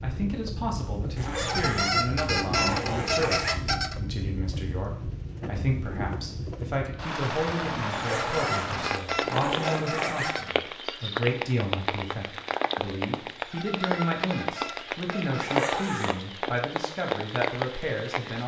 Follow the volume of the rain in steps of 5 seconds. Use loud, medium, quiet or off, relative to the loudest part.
medium, loud, loud, loud.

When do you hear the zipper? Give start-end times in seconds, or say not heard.
1.1-3.6, 7.9-10.4, 15.4-16.1.